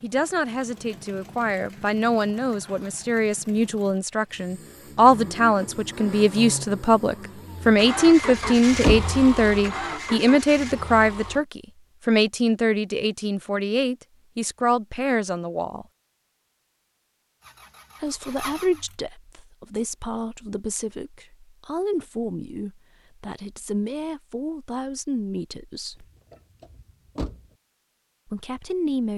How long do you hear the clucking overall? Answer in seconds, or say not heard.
not heard.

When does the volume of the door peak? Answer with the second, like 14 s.
9 s.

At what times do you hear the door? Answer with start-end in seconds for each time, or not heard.
8.0-9.1, 26.3-27.4.